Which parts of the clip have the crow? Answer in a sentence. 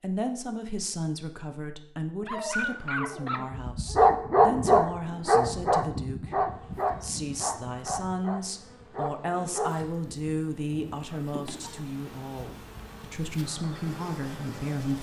The crow can't be heard in this clip.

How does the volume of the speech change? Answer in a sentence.
The loudness of the speech stays about the same.